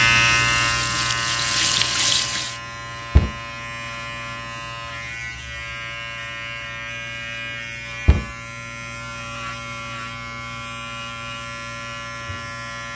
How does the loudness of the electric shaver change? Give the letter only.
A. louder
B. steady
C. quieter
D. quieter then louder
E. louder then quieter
C.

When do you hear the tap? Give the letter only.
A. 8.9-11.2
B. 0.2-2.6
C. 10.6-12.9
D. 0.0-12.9
B.